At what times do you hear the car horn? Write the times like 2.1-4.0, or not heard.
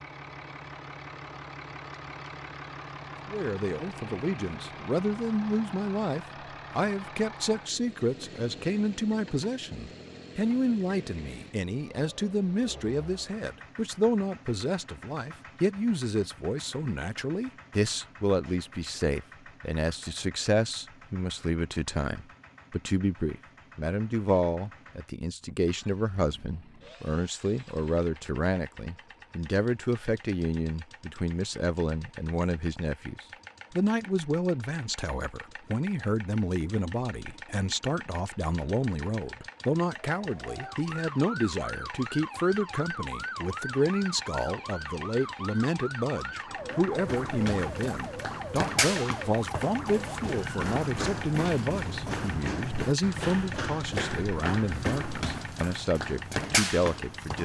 not heard.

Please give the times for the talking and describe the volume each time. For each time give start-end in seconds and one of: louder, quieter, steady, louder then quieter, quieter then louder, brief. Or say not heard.
3.3-57.4 steady.